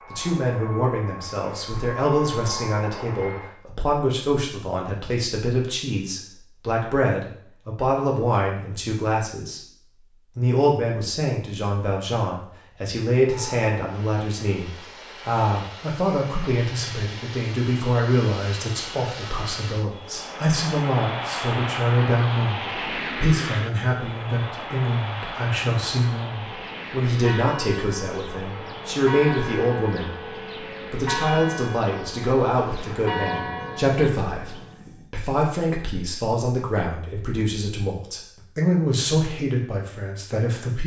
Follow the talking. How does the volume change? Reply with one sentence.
The loudness of the talking stays about the same.